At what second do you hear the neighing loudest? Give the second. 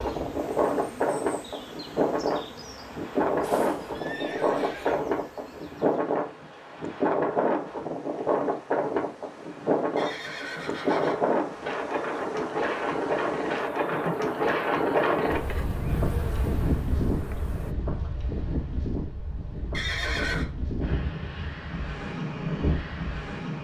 20 s.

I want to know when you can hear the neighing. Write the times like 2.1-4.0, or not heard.
3.4-5.0, 9.9-11.2, 19.7-20.4.